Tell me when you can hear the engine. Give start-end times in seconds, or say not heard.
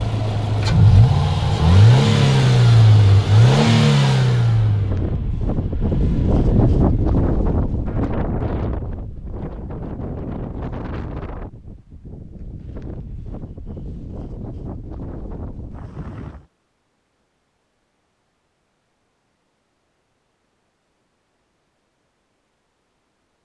0.0-8.1.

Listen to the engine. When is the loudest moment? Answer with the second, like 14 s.
2 s.